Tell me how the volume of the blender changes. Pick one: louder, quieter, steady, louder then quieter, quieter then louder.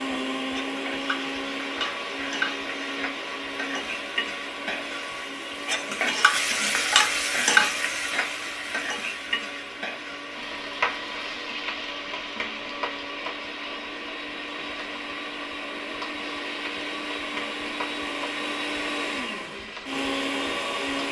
quieter then louder.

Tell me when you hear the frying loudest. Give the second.
7 s.